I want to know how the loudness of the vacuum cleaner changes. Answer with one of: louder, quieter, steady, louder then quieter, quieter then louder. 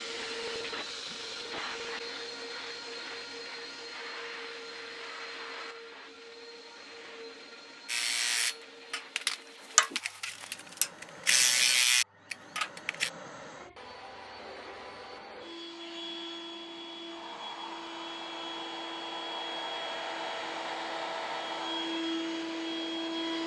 quieter then louder.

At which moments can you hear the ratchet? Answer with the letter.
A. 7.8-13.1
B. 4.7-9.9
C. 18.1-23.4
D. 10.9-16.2
A.